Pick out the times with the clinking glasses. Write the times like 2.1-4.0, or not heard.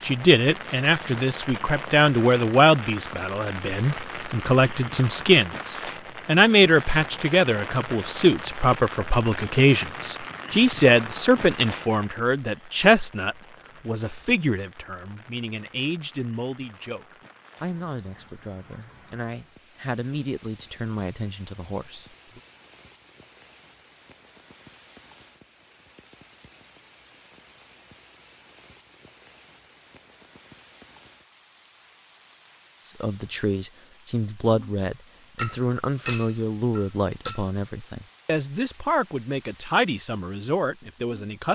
35.4-37.5.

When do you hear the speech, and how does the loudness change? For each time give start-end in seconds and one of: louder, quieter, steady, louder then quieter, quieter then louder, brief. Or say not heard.
0.0-22.4 quieter
32.9-41.5 steady.